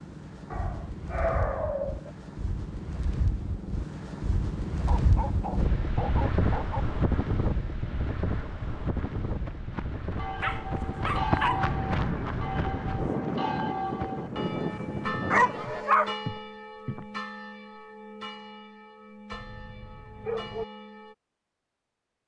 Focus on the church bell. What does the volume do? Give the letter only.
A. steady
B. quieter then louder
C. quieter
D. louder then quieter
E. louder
C.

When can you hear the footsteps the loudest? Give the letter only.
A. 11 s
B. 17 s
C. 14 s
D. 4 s
A.